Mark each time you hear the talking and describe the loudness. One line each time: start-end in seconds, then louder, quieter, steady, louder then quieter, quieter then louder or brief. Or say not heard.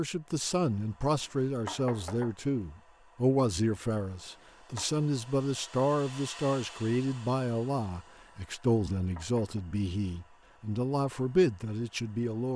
0.0-12.5 steady.